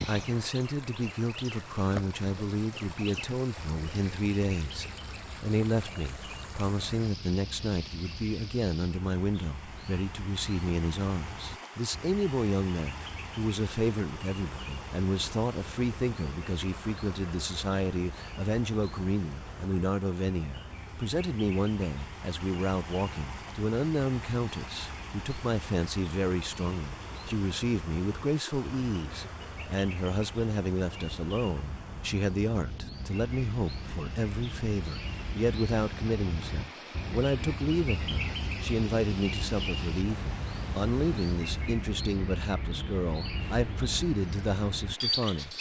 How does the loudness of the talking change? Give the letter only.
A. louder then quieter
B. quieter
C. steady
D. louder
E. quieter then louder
C.